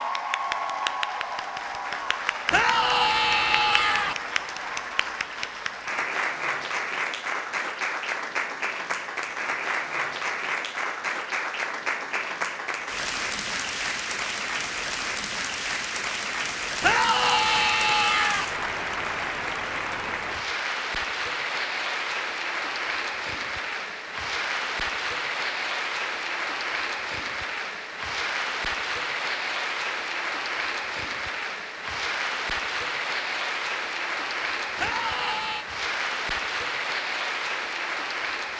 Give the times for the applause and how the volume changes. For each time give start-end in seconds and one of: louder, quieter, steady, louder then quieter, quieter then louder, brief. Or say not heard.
0.0-38.5 steady.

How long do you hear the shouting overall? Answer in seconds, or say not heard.
4 s.